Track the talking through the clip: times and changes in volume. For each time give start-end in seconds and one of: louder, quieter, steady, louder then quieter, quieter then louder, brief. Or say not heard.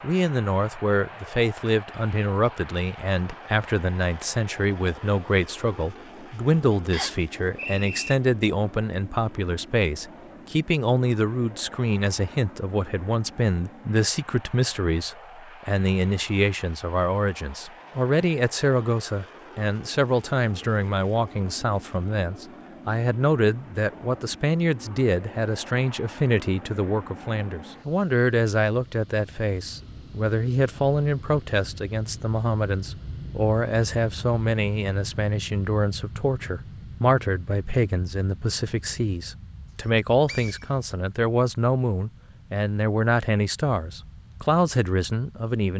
0.0-45.7 steady.